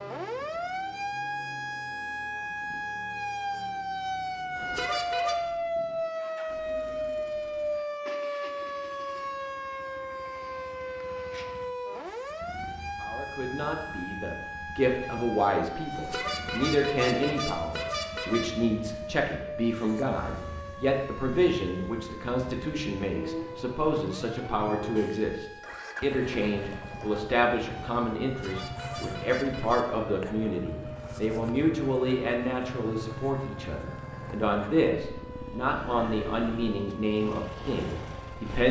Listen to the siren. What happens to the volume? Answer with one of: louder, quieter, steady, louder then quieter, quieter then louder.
quieter.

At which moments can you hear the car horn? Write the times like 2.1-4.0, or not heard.
4.5-5.3, 15.9-18.5, 28.2-29.9.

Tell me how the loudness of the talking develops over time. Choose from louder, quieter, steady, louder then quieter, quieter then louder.
steady.